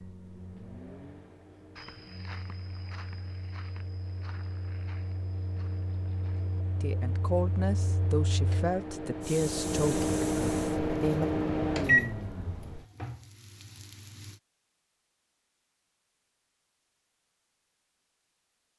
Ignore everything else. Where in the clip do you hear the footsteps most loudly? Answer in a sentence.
The loudest moment of the footsteps is at 2 seconds.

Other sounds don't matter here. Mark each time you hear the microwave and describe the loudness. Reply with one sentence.
You can hear the microwave from 0.0 to 12.8 s, getting louder.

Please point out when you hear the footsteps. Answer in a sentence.
The footsteps can be heard from 1.8 to 6.5 s.